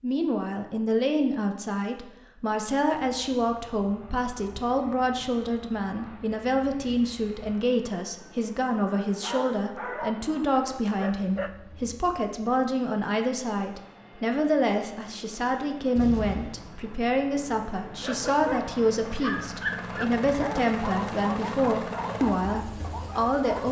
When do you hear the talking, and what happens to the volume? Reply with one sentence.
The talking can be heard from 0.0 to 23.6 s, at a steady volume.